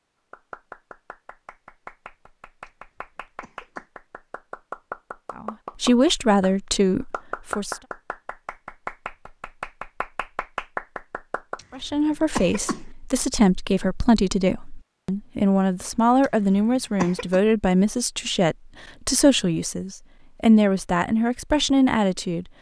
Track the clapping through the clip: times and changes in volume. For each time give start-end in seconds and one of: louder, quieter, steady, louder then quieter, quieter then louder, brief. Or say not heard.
0.3-11.8 louder.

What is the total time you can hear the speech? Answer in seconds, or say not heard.
13 s.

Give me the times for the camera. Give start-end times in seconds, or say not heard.
not heard.